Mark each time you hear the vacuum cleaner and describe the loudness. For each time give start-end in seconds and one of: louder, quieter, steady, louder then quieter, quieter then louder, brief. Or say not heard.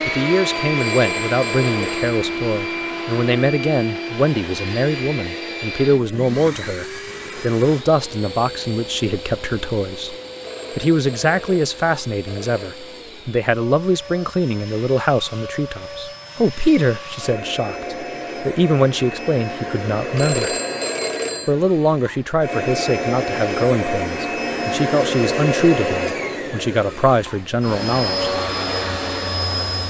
0.0-29.8 quieter then louder.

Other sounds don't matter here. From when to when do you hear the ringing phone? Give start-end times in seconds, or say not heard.
0.8-2.2, 10.4-12.8, 20.1-21.5.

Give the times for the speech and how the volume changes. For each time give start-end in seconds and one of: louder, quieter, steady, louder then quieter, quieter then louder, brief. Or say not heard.
0.1-10.2 steady
10.8-20.6 steady
21.4-28.3 steady.